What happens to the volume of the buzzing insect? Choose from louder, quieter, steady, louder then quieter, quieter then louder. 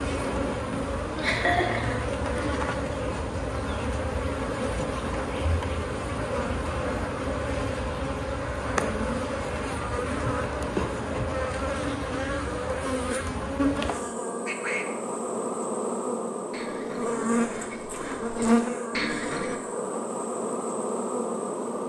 steady.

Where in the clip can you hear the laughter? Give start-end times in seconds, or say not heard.
0.7-2.5.